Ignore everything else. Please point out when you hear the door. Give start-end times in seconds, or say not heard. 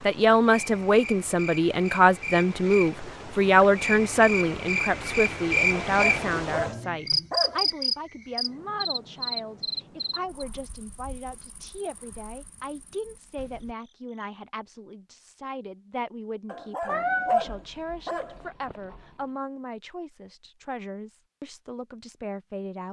not heard.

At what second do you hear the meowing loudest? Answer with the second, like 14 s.
17 s.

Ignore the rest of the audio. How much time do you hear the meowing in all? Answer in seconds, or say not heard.
2 s.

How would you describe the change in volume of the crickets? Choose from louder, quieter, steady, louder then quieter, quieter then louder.
louder then quieter.